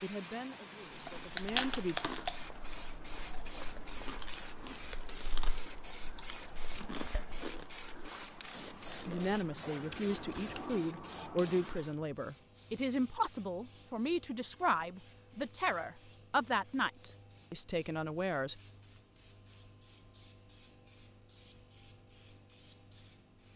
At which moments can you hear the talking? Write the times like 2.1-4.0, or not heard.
0.0-1.9, 9.1-18.6.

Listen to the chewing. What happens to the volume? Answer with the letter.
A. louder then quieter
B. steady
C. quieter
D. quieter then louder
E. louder
C.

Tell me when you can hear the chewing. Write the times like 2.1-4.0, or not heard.
0.9-10.8.